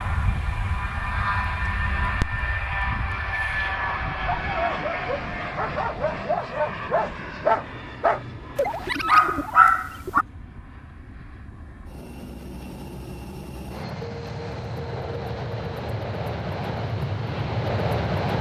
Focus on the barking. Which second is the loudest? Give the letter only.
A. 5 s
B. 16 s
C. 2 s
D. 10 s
D.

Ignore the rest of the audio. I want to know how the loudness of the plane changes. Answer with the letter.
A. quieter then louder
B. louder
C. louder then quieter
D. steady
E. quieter
A.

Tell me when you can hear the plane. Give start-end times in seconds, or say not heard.
0.0-18.3.